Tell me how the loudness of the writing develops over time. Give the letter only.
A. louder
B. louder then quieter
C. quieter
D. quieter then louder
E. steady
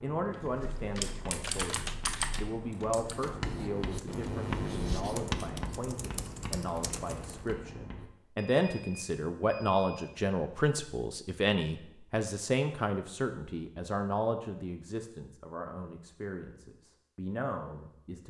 B.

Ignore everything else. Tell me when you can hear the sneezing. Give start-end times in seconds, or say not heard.
not heard.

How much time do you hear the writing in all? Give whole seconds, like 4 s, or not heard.
8 s.